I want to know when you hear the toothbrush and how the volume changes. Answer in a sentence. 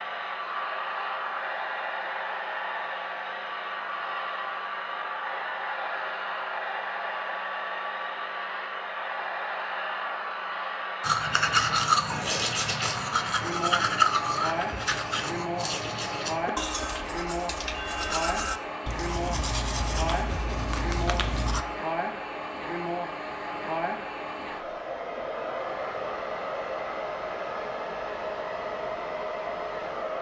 The toothbrush can be heard from 11.0 to 21.6 s, getting quieter.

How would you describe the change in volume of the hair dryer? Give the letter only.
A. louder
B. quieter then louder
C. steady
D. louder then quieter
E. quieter
C.